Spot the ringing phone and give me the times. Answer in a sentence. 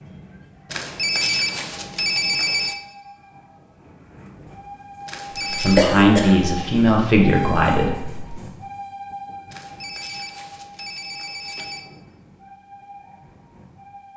The ringing phone can be heard from 0.7 to 2.8 s, from 5.0 to 5.9 s and from 9.5 to 11.9 s.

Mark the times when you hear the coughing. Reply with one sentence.
You can hear the coughing from 5.3 to 6.3 s.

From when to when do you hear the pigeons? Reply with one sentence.
The pigeons can't be heard in this clip.